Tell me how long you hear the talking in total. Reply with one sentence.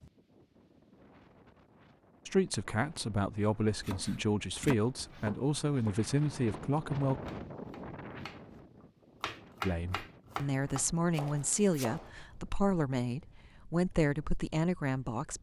The talking can be heard for 11 seconds in total.